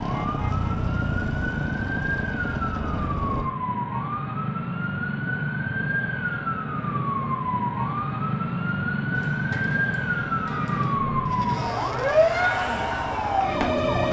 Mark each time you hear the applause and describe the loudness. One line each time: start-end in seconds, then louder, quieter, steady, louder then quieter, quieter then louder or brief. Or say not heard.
not heard.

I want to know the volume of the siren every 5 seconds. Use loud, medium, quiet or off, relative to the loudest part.
medium, loud, loud.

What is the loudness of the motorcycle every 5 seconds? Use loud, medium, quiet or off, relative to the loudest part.
loud, off, medium.